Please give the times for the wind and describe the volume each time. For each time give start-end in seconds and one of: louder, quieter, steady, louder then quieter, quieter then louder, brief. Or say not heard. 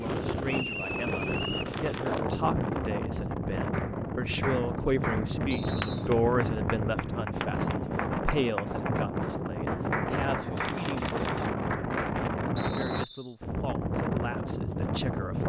0.0-15.4 steady.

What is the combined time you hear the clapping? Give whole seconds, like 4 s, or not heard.
9 s.